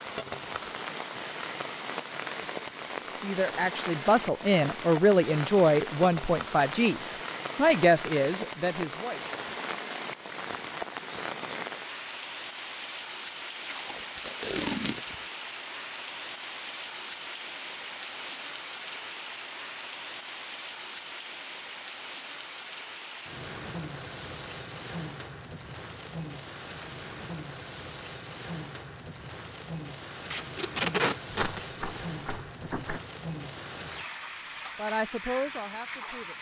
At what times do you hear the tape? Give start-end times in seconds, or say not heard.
13.6-15.2, 30.3-31.7.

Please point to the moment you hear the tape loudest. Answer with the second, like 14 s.
31 s.